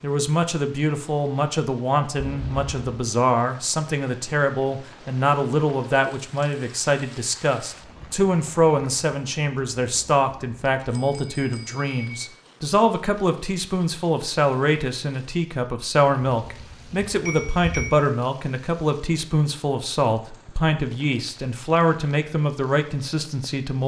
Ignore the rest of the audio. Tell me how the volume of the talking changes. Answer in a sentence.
The volume of the talking stays about the same.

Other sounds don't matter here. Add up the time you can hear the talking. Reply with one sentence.
You can hear the talking for 24 seconds altogether.